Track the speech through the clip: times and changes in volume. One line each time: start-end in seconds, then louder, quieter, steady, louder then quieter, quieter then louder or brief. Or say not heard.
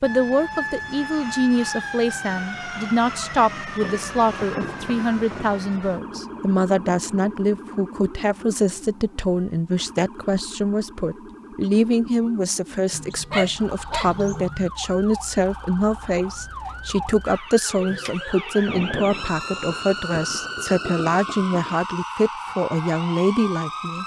0.0-24.0 steady.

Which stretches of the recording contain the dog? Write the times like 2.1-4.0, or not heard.
12.9-14.7.